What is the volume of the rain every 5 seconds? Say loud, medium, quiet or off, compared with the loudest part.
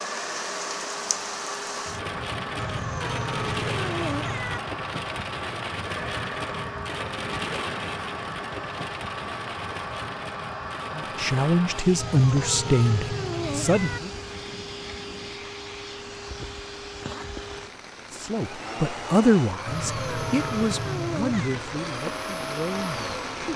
loud, loud, medium, medium, loud.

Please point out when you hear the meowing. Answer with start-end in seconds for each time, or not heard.
2.5-4.6, 11.9-14.0, 19.6-21.6.